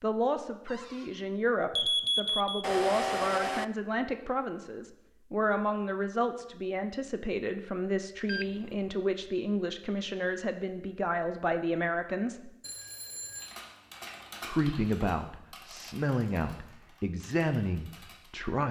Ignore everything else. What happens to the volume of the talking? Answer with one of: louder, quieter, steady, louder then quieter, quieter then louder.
steady.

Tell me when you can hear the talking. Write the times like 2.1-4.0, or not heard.
0.0-12.5, 14.4-18.6.